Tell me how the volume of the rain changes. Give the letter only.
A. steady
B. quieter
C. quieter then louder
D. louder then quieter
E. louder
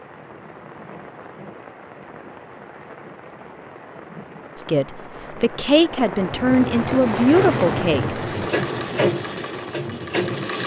D.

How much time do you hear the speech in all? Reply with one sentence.
The speech can be heard for 4 seconds in total.